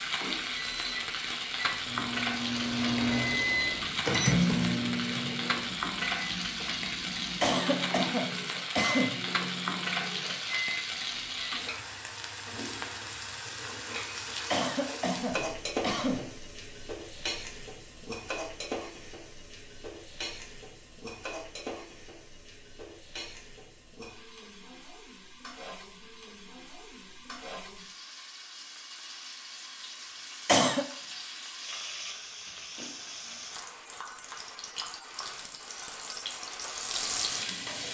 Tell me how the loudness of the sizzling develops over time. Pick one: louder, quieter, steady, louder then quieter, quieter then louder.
quieter then louder.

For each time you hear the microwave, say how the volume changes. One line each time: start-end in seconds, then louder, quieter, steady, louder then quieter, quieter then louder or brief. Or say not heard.
0.0-11.7 louder then quieter.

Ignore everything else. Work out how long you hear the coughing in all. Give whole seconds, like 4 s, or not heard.
4 s.